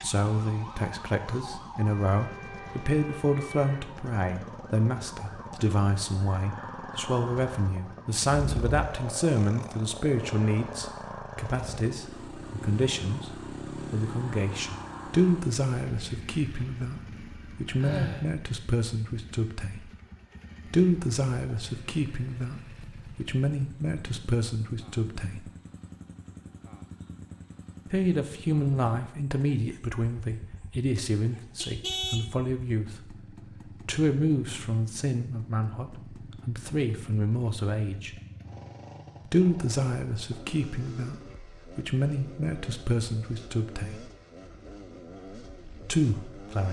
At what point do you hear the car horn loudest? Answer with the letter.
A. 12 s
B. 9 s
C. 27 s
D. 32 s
D.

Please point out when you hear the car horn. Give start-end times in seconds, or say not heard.
8.2-8.8, 31.6-32.2.